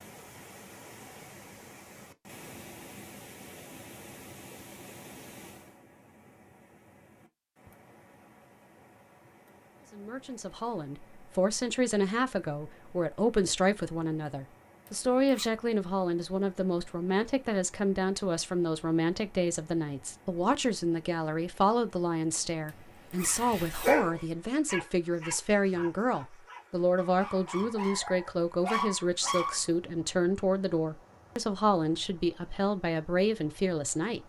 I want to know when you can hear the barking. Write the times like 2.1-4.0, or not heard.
23.3-29.6.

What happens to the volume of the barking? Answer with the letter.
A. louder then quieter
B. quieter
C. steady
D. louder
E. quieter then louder
E.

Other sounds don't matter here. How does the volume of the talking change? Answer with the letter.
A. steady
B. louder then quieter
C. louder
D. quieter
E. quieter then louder
A.